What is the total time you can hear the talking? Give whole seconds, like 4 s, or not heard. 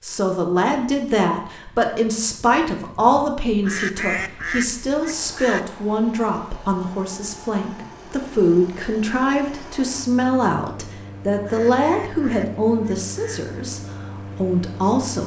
15 s.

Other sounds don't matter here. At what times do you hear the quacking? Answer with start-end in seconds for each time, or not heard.
3.6-5.8, 11.4-13.4.